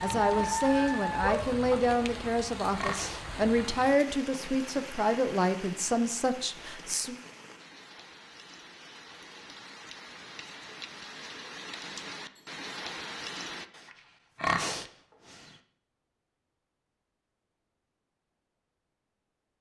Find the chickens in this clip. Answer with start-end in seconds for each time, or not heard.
0.2-1.8.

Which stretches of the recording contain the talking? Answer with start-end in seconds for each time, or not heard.
0.0-7.2.